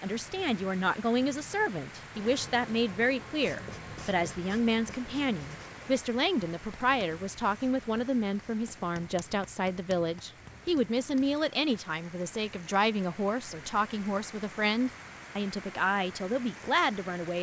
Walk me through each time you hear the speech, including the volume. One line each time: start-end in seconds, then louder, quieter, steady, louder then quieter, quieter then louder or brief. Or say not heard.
0.0-17.3 steady.